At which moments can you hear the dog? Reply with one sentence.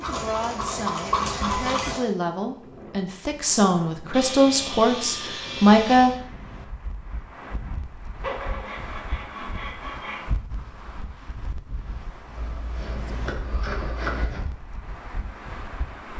You can't hear the dog here.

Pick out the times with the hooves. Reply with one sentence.
The hooves can be heard from 0.0 to 1.9 s.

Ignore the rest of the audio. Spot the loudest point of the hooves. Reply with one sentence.
The loudest moment of the hooves is at 1 second.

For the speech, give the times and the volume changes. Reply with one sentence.
You can hear the speech from 0.1 to 6.2 s, getting louder.